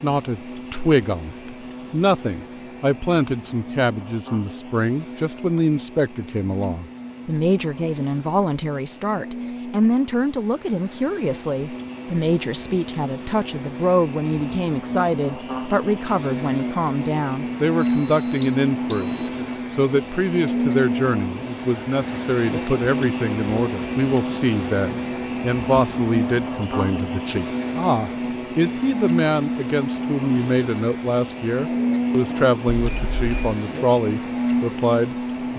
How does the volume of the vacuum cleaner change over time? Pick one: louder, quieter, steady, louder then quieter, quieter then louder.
louder.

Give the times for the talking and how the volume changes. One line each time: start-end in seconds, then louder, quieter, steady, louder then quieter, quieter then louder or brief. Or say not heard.
0.0-35.5 steady.